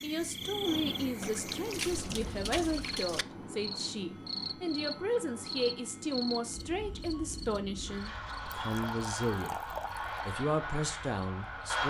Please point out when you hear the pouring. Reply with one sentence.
You can hear the pouring from 1.2 to 3.2 s and from 8.6 to 10.3 s.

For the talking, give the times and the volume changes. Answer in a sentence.
You can hear the talking from 0.0 to 11.8 s, at a steady volume.